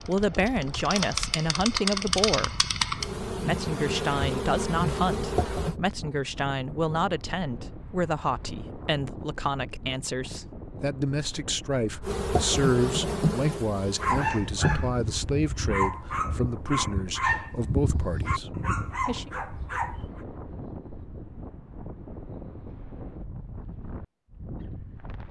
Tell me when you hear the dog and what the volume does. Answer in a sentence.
The dog can be heard from 13.8 to 20.2 s, at a steady volume.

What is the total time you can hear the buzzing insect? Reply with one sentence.
The buzzing insect can be heard for 9 seconds in total.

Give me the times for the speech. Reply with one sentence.
You can hear the speech from 0.1 to 2.6 s and from 3.4 to 19.3 s.